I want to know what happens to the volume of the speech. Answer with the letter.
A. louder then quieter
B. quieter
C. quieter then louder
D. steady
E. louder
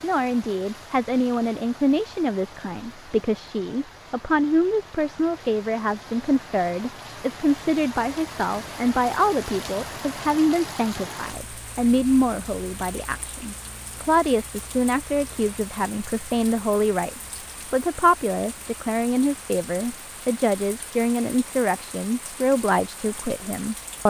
D.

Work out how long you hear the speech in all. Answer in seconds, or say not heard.
24 s.